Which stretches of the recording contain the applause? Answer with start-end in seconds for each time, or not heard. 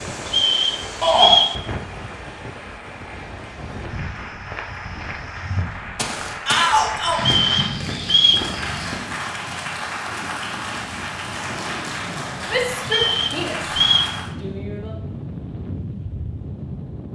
0.0-14.3.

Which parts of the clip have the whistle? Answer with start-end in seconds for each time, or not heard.
0.2-1.6, 7.2-8.5, 12.8-14.2.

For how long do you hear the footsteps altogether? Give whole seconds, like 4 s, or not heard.
5 s.